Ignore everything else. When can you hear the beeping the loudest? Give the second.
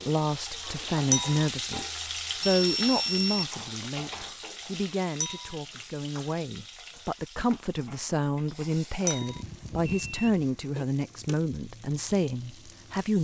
3 s.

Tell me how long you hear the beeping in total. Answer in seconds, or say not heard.
3 s.